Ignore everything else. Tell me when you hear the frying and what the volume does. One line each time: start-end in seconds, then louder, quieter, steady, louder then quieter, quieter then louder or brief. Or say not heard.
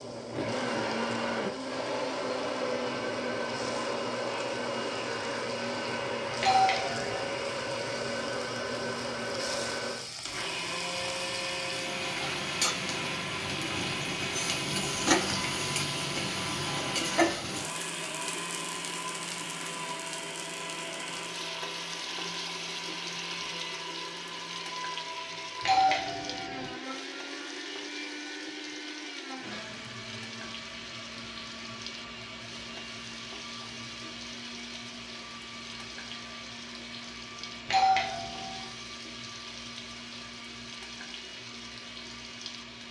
0.0-42.8 louder then quieter.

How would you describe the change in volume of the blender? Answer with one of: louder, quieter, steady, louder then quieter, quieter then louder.
quieter.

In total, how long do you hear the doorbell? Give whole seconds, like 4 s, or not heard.
3 s.